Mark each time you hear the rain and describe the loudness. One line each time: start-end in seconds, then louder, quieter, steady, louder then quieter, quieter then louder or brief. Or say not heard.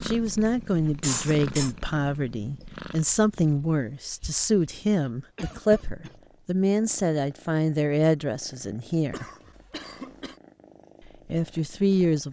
not heard.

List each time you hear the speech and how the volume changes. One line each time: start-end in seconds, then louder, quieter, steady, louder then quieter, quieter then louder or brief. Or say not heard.
0.0-9.2 steady
11.2-12.2 brief.